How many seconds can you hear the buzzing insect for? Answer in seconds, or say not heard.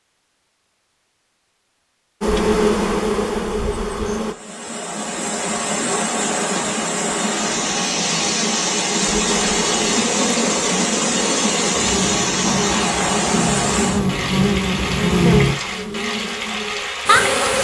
11 s.